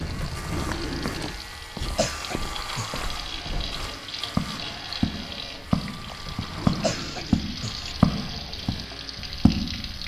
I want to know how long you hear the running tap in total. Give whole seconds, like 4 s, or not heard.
10 s.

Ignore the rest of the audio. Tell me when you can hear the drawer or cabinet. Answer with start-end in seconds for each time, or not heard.
0.1-1.4, 6.2-7.4.